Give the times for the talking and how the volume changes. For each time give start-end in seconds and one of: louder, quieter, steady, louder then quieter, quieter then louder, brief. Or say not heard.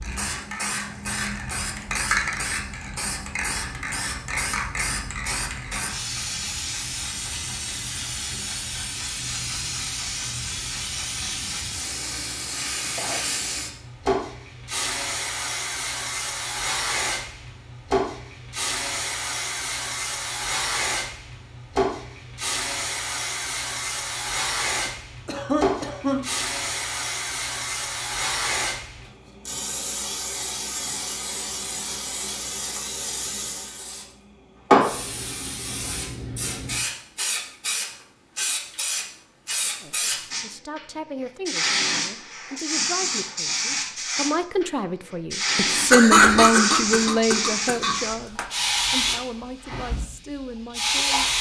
39.8-51.2 louder then quieter.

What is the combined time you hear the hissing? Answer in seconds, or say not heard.
51 s.